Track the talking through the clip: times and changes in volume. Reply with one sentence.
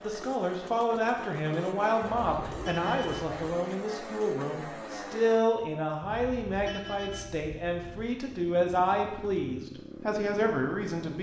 The talking can be heard from 0.0 to 11.1 s, at a steady volume.